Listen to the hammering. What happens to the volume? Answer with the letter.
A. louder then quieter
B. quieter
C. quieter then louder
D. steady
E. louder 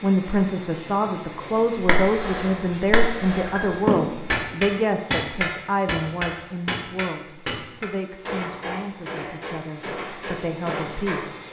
A.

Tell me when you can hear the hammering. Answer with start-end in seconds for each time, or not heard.
1.4-11.2.